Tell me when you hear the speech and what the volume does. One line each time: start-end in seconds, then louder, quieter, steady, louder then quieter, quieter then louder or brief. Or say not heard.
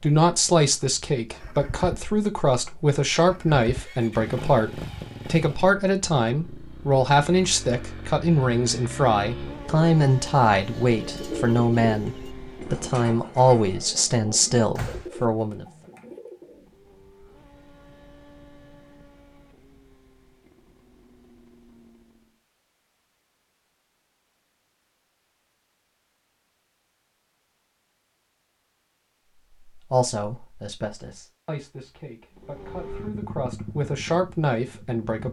0.0-15.7 steady
29.8-35.2 quieter then louder.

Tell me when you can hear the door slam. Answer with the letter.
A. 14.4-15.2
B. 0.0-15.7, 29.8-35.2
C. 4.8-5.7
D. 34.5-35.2
A.